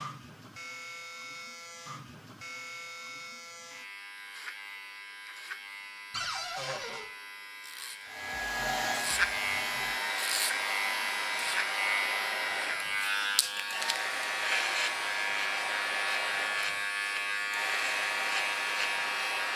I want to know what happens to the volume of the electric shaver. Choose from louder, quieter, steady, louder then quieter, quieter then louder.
louder.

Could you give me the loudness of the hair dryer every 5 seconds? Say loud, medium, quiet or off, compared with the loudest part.
off, loud, loud, loud.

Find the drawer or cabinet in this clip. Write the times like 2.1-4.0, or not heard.
6.1-7.0.